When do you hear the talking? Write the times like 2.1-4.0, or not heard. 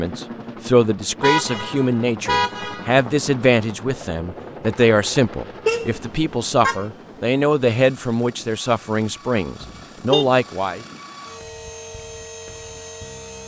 0.0-10.8.